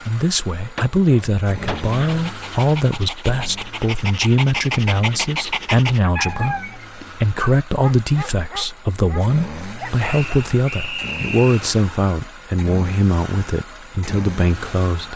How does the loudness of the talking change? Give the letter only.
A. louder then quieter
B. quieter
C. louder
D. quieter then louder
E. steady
E.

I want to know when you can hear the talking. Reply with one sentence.
The talking can be heard from 0.1 to 15.1 s.